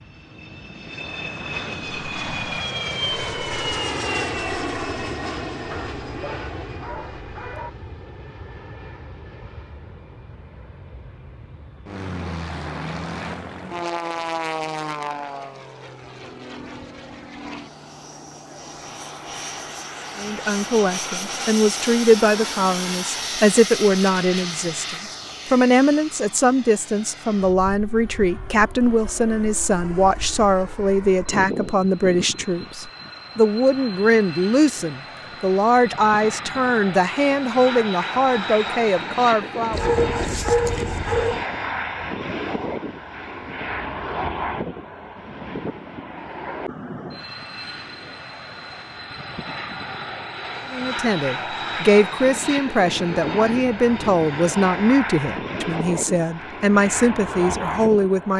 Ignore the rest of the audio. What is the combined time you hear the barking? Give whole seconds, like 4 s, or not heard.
4 s.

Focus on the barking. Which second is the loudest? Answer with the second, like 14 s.
41 s.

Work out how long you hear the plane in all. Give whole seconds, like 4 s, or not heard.
58 s.